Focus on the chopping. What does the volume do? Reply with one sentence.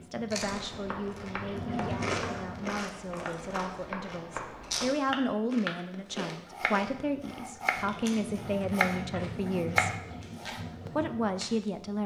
The loudness of the chopping goes up.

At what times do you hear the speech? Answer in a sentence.
You can hear the speech from 0.0 to 9.9 s and from 10.8 to 12.0 s.